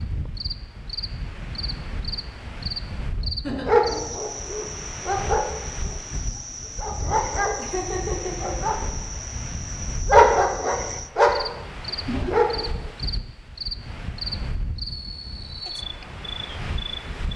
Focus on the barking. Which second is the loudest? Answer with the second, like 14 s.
10 s.